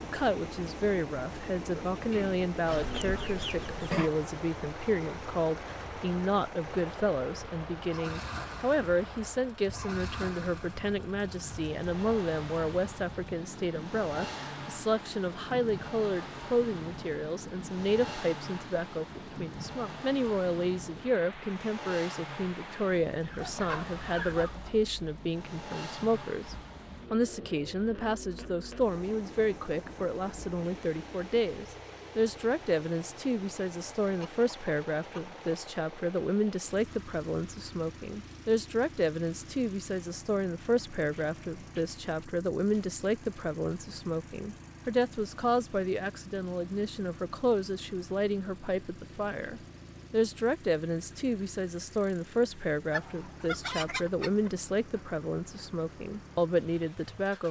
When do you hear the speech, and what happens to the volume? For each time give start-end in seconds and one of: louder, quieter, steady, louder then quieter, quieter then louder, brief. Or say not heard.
0.0-57.4 steady.